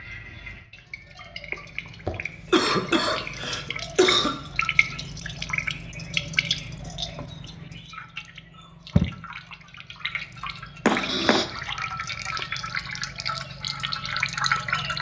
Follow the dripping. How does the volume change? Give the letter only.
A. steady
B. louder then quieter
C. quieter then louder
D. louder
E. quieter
D.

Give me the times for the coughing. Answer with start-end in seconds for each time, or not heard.
2.0-4.3, 10.8-11.4.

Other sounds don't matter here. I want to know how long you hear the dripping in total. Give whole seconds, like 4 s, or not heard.
15 s.